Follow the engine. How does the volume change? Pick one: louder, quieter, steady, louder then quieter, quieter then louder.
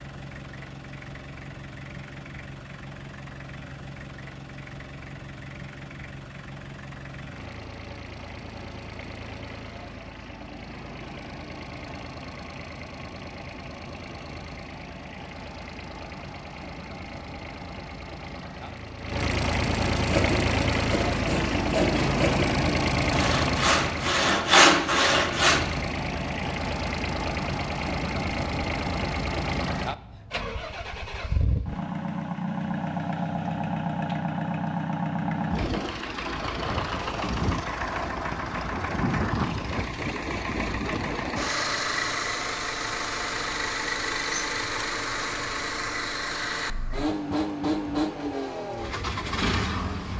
louder.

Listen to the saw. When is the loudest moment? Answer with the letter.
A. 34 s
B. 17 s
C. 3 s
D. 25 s
D.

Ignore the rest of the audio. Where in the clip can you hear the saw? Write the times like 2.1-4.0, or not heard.
20.1-25.6.